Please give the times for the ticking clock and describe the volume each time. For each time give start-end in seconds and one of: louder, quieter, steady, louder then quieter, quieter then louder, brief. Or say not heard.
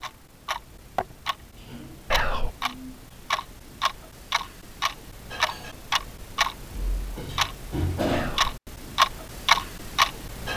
0.0-10.5 louder.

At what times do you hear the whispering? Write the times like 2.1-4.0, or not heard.
2.1-2.5, 8.1-8.6.